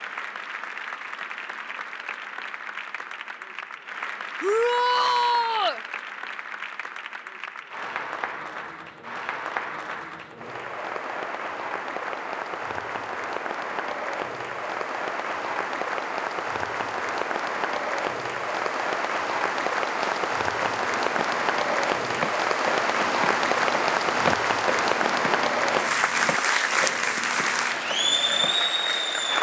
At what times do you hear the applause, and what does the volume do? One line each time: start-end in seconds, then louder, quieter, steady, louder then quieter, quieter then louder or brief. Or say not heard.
0.0-29.3 louder.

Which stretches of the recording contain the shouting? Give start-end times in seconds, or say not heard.
4.4-5.8.